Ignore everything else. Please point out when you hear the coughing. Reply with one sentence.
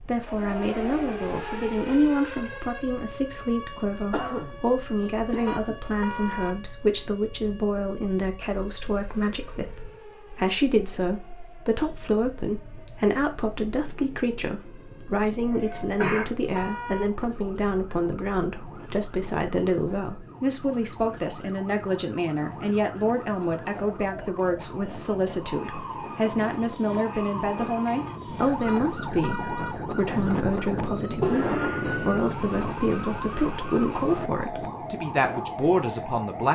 The coughing can be heard from 4.1 to 5.8 s, from 15.2 to 16.6 s and from 31.0 to 32.5 s.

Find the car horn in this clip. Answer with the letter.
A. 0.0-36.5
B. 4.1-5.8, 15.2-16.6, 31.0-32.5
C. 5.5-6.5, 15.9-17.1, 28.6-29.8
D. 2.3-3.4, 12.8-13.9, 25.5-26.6
C.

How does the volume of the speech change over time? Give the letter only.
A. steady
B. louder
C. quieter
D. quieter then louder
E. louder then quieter
A.